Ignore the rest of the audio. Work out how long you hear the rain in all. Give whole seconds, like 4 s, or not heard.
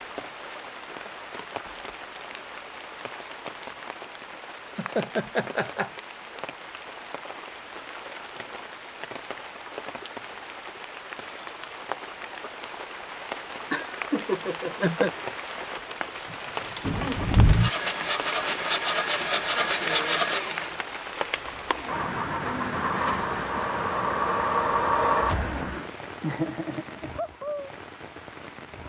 29 s.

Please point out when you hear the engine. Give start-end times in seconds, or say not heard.
16.3-25.9.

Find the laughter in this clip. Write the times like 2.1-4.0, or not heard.
4.8-5.9, 13.7-15.1, 26.2-27.1.